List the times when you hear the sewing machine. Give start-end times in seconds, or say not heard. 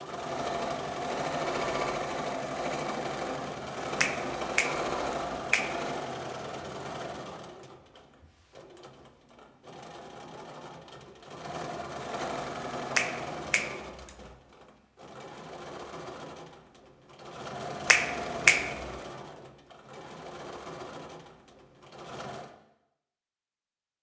0.0-22.5.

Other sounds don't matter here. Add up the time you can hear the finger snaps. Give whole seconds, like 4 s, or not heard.
4 s.